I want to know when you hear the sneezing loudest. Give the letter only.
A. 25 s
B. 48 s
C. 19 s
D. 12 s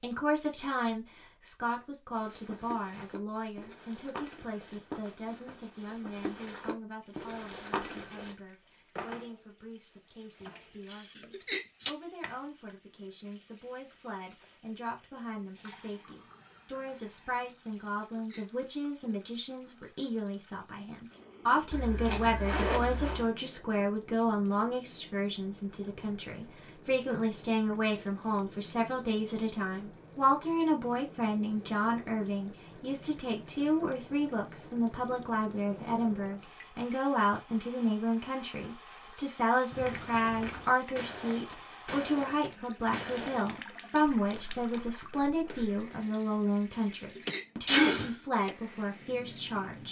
B.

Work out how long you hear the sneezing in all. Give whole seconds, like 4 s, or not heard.
3 s.